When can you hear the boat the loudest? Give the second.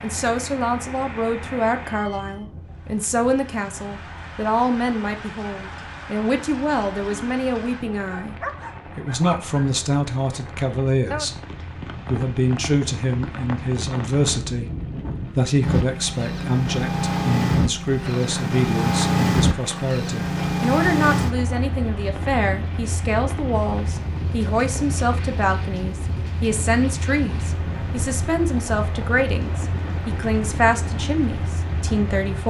19 s.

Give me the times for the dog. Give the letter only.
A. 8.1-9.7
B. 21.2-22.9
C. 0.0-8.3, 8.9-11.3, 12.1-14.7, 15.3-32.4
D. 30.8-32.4
A.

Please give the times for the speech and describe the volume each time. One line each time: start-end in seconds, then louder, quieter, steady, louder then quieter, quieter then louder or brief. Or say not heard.
0.0-8.3 steady
8.9-11.3 brief
12.1-14.7 brief
15.3-32.4 steady.